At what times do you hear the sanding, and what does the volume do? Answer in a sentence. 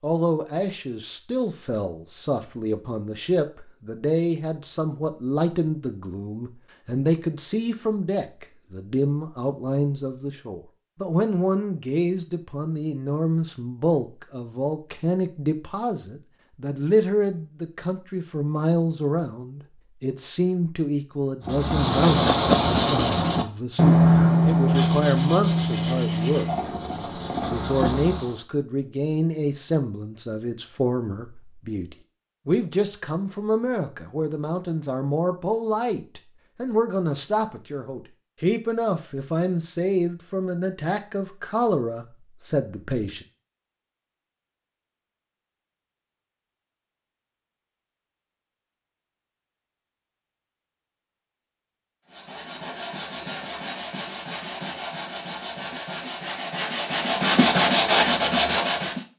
The sanding can be heard from 21.4 to 28.4 s, getting quieter; and from 52.1 to 59.0 s, getting louder.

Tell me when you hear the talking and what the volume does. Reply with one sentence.
You can hear the talking from 0.0 to 43.2 s, at a steady volume.